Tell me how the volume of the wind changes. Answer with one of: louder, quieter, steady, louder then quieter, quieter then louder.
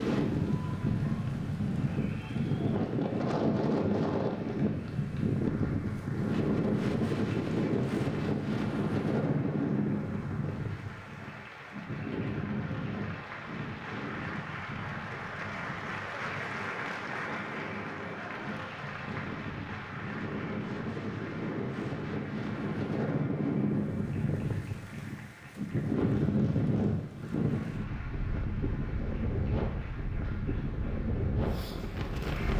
quieter then louder.